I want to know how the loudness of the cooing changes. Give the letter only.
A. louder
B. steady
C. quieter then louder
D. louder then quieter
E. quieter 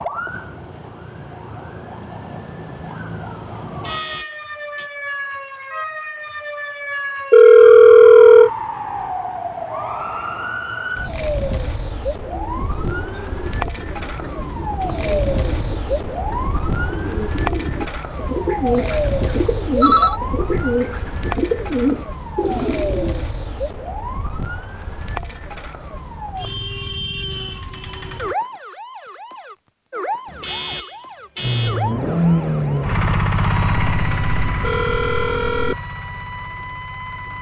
A.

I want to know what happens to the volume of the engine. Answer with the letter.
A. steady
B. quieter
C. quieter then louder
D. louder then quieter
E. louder
B.